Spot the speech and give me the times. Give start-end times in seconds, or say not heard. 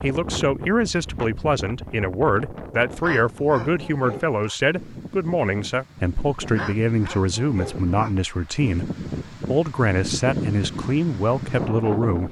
0.0-12.2.